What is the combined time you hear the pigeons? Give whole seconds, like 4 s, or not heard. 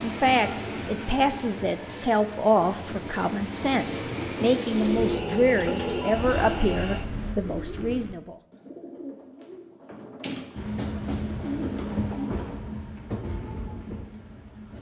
8 s.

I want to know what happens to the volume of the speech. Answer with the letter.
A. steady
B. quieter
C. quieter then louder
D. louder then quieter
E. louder
A.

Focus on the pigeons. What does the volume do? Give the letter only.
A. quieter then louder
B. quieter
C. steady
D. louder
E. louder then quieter
A.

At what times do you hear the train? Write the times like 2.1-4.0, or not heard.
0.0-7.3, 10.6-14.7.